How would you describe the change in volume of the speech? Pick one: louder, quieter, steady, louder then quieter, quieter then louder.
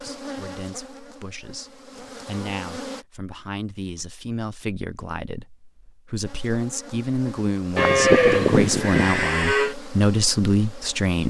louder.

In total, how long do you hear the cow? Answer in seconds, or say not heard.
2 s.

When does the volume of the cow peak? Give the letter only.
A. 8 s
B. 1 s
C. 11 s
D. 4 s
A.